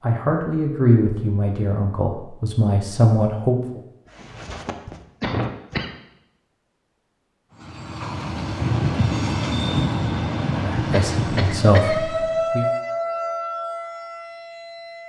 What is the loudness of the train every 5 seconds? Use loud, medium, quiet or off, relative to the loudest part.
off, loud, loud.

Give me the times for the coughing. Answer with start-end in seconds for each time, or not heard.
4.0-6.0, 10.9-12.1.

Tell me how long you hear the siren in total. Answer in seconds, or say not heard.
3 s.